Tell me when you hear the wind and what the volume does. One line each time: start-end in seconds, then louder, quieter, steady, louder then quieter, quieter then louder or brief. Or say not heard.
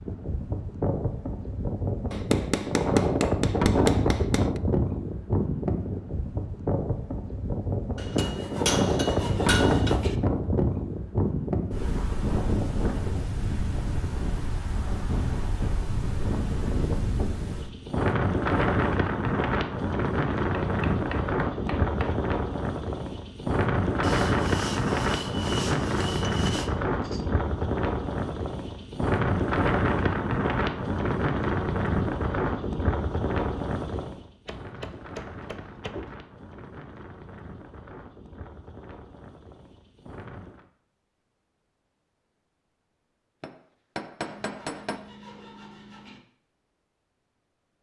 0.0-40.7 quieter.